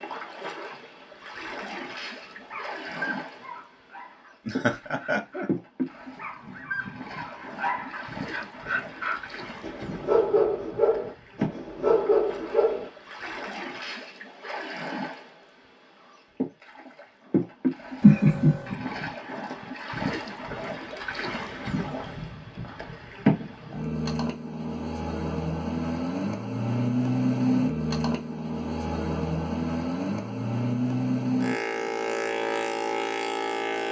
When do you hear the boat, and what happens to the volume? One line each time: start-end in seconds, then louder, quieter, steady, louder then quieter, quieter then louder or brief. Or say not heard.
0.0-33.8 louder.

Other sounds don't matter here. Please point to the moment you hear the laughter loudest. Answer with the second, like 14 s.
18 s.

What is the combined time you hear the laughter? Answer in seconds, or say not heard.
2 s.